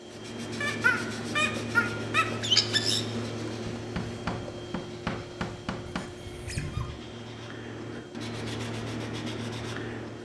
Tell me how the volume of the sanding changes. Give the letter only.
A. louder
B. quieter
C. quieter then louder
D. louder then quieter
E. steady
C.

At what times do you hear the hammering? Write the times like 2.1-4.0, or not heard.
3.6-6.1.